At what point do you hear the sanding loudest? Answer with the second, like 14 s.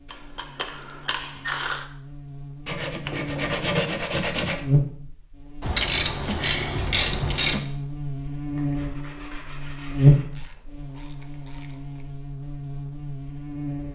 4 s.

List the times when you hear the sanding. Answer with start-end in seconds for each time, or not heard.
2.6-4.7, 8.6-10.2.